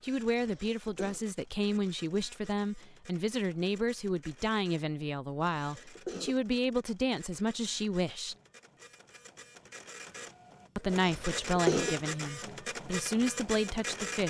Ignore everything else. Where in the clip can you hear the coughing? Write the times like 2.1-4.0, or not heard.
0.3-1.2, 5.6-6.3, 11.0-11.9.